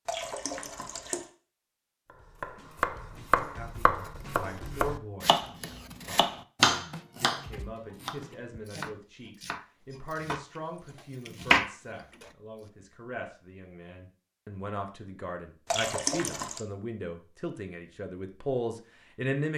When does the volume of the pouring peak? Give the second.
16 s.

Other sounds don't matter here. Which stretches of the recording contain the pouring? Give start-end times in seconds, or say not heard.
0.1-1.2, 15.7-16.6.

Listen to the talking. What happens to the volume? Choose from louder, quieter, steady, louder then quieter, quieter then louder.
louder.